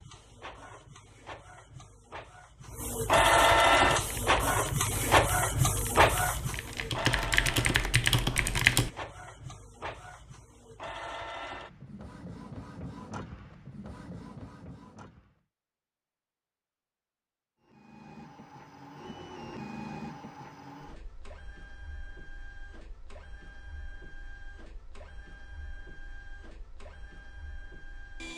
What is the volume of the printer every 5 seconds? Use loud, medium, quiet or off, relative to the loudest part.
loud, loud, quiet, quiet, quiet, quiet.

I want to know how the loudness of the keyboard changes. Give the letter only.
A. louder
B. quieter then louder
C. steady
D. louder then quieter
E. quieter
A.